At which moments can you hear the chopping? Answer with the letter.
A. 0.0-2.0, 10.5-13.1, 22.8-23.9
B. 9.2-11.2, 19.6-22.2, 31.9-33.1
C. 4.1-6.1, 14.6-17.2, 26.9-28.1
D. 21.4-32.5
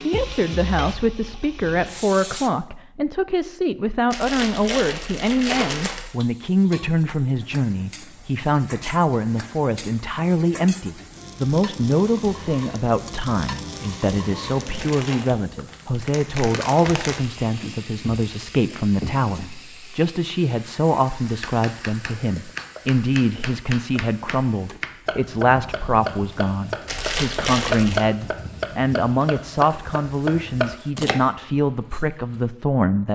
D.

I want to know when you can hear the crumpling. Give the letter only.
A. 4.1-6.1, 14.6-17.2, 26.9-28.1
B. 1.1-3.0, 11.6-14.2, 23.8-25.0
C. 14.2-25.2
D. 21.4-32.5
A.